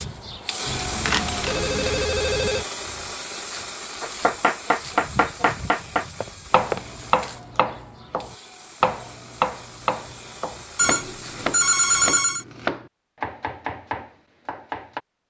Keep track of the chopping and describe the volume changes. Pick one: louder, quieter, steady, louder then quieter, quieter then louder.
quieter.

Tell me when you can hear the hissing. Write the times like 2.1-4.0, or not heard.
0.0-12.2.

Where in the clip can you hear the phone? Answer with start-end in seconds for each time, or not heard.
0.7-2.6, 6.2-6.8, 10.8-12.4.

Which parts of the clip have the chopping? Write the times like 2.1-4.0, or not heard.
4.0-15.0.